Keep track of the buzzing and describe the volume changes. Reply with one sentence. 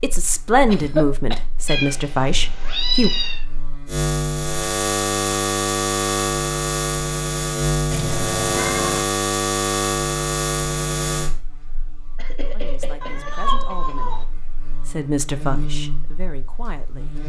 The volume of the buzzing goes up, then down.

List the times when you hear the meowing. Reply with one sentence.
The meowing can be heard from 1.6 to 3.5 s, from 7.9 to 9.1 s and from 13.0 to 14.2 s.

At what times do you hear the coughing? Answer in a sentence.
You can hear the coughing from 0.7 to 1.4 s and from 12.2 to 13.9 s.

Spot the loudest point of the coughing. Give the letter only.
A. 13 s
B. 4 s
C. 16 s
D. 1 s
D.